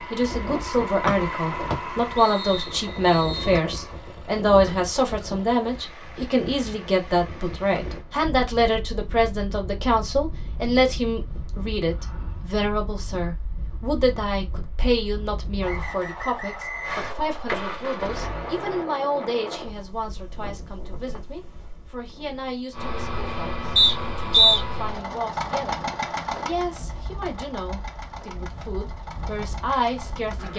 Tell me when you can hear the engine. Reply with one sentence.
The engine can be heard from 0.0 to 8.1 s, from 16.9 to 18.9 s and from 22.7 to 30.5 s.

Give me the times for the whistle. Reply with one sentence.
You can hear the whistle from 1.1 to 3.5 s, from 15.6 to 17.6 s and from 23.8 to 24.6 s.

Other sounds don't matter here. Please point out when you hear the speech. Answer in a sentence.
You can hear the speech from 0.1 to 30.5 s.